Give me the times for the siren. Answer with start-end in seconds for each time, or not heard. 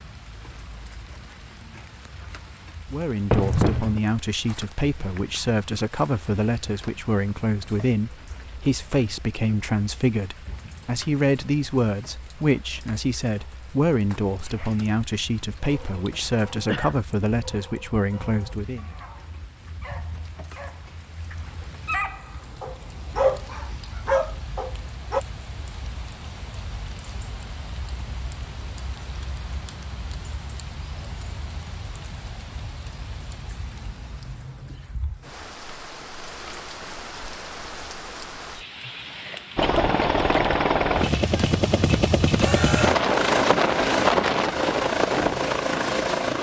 not heard.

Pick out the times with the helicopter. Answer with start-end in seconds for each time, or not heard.
39.5-46.3.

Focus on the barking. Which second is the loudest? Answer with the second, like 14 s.
23 s.